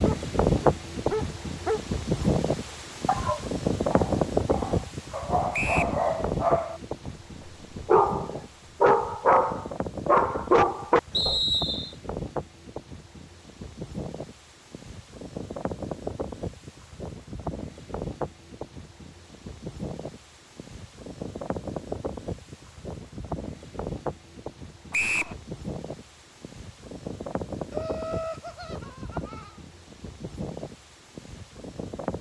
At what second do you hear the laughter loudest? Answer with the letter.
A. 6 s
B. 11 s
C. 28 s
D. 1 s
C.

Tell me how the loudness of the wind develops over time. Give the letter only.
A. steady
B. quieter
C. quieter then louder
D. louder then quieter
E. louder
B.